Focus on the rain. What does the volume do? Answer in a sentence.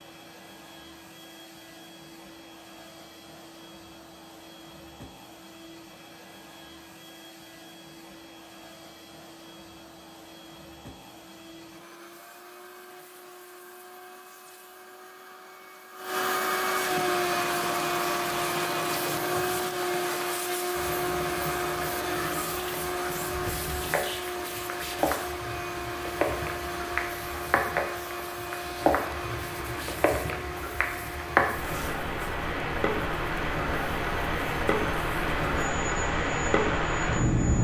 The volume of the rain goes up.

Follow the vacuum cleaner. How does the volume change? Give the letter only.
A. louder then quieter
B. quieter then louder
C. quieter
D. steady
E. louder
A.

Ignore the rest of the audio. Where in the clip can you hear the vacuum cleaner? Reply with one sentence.
The vacuum cleaner can be heard from 0.0 to 37.6 s.